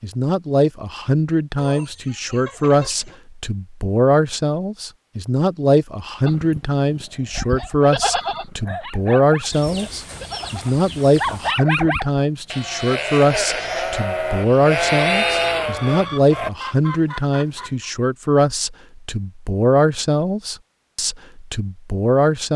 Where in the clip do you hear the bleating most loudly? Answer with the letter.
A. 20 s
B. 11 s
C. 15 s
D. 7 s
C.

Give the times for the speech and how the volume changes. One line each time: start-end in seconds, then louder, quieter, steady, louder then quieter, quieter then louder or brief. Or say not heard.
0.0-22.5 steady.